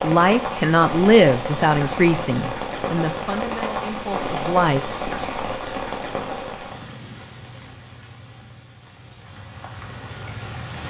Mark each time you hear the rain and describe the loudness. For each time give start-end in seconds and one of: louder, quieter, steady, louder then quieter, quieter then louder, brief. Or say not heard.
0.0-10.8 quieter.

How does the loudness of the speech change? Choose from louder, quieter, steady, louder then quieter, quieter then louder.
quieter.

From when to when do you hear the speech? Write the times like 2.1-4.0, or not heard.
0.0-4.8.